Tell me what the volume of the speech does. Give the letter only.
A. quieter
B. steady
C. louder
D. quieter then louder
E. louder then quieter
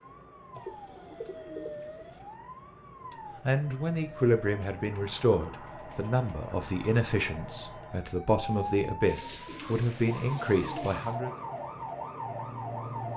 B.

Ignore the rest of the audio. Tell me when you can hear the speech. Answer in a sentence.
You can hear the speech from 3.4 to 11.3 s.